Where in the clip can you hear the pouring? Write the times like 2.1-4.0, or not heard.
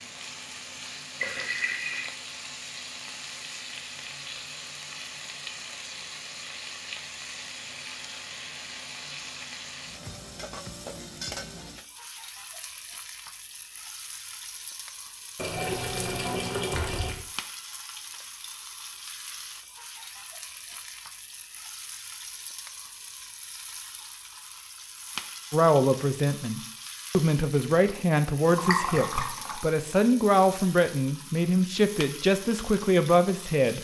1.2-2.1, 15.3-17.2, 28.4-29.6.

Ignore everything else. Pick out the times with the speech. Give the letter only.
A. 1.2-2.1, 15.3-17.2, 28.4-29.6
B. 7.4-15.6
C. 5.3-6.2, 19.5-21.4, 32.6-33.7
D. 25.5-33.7
D.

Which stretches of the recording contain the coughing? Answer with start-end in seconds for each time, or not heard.
not heard.